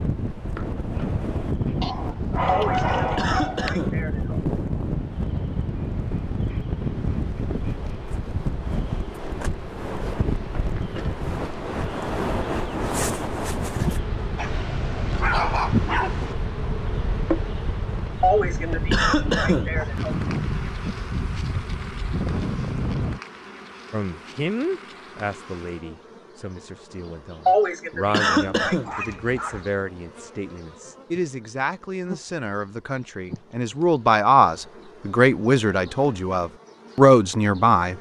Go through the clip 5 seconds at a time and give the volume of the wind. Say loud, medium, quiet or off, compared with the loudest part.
loud, loud, loud, medium, loud, off, off, off.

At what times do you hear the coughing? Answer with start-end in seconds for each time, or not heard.
2.5-4.4, 18.2-20.1, 27.4-28.9.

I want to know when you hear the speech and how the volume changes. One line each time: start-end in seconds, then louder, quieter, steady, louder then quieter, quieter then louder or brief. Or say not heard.
23.9-37.9 louder.